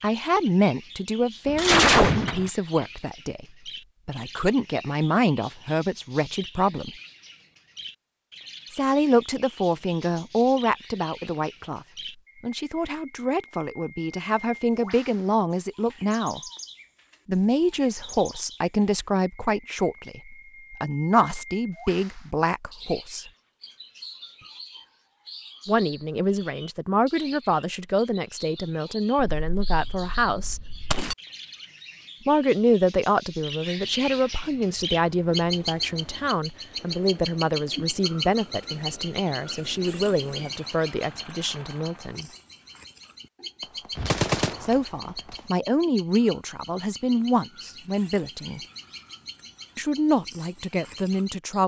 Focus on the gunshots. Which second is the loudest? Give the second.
2 s.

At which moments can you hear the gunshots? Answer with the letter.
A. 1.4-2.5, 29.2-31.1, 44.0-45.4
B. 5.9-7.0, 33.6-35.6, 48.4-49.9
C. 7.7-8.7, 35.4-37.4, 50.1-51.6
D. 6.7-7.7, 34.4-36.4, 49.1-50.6
A.